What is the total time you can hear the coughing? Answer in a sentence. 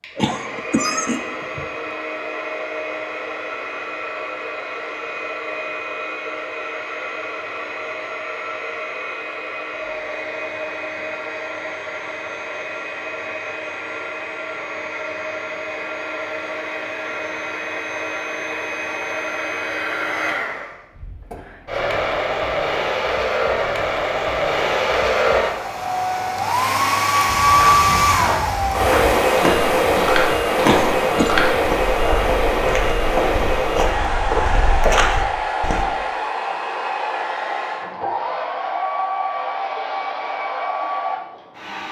The coughing can be heard for 2 seconds in total.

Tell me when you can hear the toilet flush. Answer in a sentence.
You can't hear the toilet flush here.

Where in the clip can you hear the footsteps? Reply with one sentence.
You can hear the footsteps from 27.2 to 35.9 s.